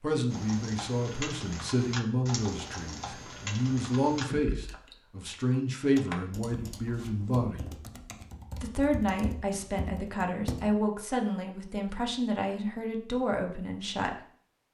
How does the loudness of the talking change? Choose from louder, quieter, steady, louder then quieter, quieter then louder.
steady.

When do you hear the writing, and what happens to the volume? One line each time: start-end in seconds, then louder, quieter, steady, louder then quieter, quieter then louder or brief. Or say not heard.
not heard.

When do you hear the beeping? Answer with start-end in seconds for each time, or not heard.
not heard.